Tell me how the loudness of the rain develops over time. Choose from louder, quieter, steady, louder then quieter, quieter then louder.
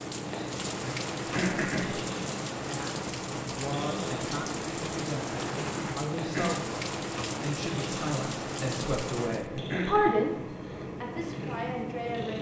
steady.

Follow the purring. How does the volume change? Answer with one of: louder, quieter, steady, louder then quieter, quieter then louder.
steady.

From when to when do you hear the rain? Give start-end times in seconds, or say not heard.
0.0-9.5.